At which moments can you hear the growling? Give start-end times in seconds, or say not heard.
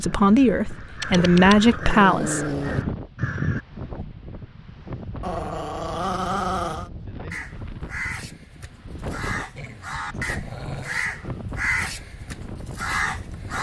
1.1-2.9, 5.2-6.9, 9.6-11.1.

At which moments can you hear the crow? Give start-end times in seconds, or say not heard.
0.2-3.6, 7.3-13.5.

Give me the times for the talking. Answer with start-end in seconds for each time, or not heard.
0.0-2.5.